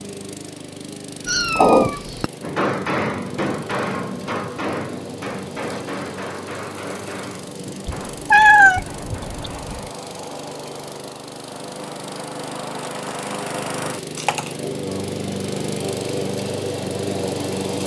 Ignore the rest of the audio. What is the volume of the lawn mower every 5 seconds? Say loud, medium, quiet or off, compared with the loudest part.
medium, medium, medium, loud.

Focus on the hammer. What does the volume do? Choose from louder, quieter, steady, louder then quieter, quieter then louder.
quieter.